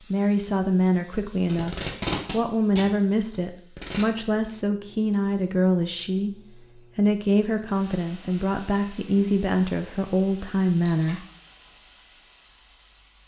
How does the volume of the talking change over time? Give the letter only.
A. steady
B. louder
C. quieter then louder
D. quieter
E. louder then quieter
A.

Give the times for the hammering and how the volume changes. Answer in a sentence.
You can't hear the hammering here.